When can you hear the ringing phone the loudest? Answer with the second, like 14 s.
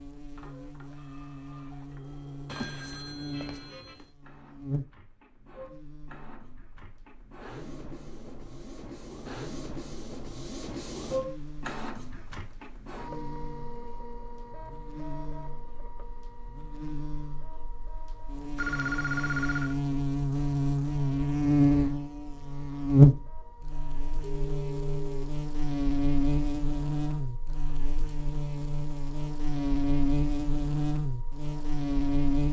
19 s.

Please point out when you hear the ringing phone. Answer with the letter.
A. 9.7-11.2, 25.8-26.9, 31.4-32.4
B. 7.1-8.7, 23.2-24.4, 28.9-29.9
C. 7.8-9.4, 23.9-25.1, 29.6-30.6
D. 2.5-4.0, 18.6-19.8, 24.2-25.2
D.